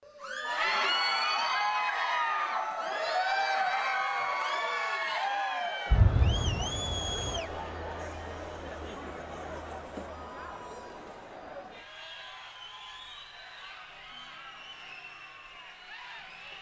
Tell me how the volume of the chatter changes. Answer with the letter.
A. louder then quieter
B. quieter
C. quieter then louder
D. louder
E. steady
B.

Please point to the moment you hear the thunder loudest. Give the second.
6 s.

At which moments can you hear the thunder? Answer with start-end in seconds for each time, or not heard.
5.9-7.4.